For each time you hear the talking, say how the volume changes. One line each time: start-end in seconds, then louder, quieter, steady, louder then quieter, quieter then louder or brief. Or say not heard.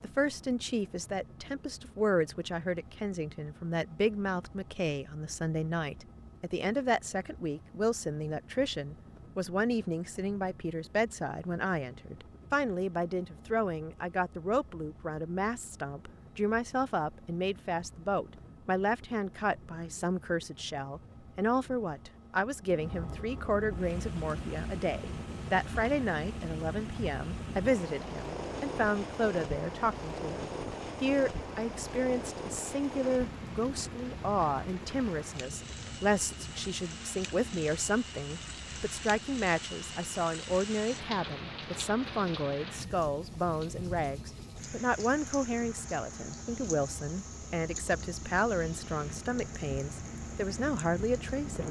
0.0-51.6 steady.